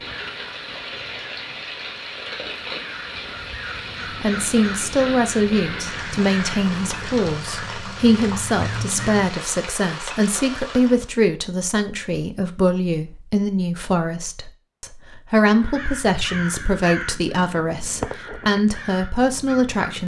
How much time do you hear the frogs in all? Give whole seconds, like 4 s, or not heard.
not heard.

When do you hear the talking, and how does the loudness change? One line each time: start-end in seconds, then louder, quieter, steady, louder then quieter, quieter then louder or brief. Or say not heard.
4.2-20.0 steady.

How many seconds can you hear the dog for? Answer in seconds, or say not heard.
not heard.